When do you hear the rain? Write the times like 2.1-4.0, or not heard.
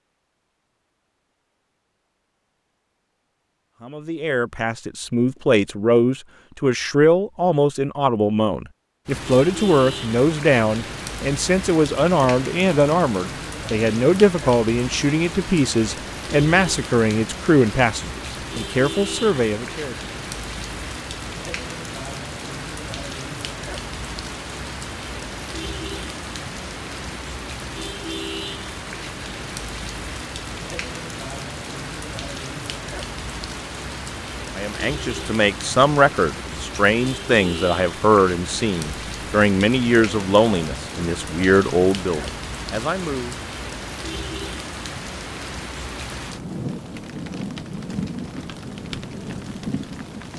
9.1-50.3.